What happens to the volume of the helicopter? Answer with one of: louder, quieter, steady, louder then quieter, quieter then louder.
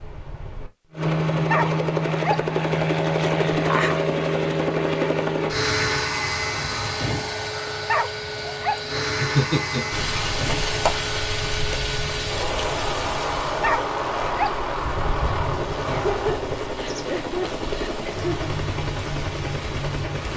quieter.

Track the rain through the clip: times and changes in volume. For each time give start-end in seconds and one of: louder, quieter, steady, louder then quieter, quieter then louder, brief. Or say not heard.
9.9-20.3 quieter.